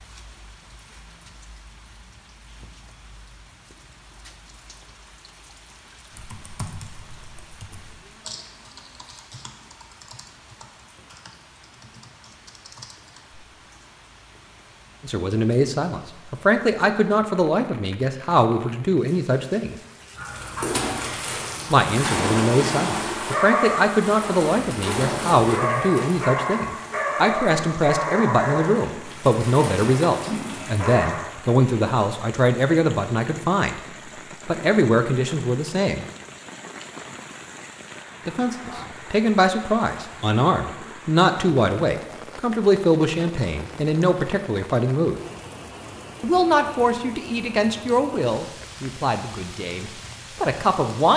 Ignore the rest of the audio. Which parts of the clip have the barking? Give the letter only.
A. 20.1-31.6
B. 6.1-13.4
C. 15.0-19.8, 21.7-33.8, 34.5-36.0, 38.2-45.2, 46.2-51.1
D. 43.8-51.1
A.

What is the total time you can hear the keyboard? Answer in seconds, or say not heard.
7 s.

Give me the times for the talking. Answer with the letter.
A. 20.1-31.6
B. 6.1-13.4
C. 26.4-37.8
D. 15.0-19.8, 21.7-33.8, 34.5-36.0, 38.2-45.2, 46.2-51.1
D.